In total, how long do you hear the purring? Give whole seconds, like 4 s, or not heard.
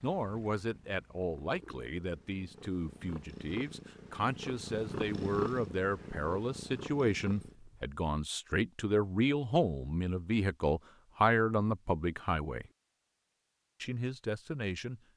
8 s.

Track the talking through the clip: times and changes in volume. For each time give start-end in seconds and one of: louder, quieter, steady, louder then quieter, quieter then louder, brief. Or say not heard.
0.0-12.7 louder
13.8-15.0 brief.